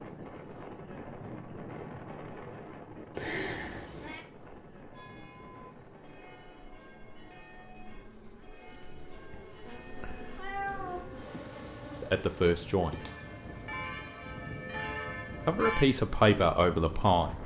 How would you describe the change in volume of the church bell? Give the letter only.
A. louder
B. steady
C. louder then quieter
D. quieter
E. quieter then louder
A.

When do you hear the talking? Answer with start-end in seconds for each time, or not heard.
12.0-12.9, 15.4-17.4.